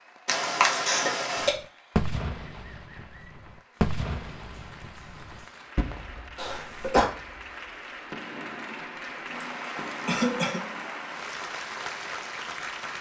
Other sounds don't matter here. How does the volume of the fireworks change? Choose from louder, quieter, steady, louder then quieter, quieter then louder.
quieter.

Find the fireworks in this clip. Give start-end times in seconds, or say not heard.
1.4-11.3.